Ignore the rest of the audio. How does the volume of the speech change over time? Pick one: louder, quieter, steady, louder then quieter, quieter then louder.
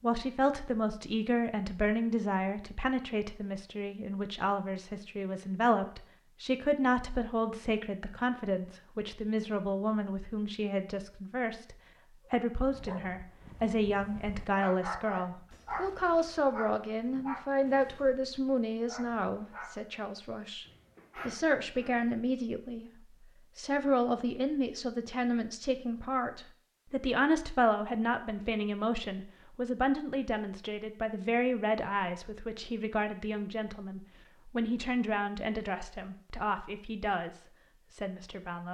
steady.